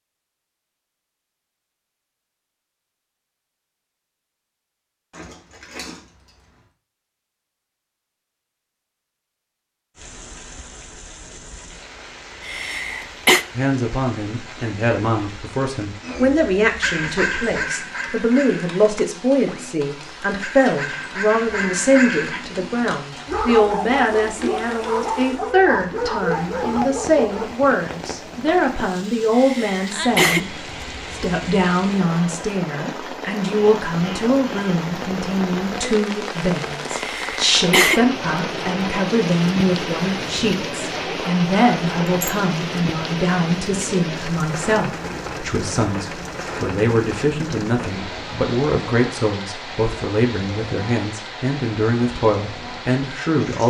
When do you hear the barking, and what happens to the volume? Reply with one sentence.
You can hear the barking from 16.0 to 27.5 s, getting quieter then louder.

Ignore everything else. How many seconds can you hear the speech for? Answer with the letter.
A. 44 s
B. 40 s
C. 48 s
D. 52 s
B.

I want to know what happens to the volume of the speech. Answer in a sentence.
The volume of the speech stays about the same.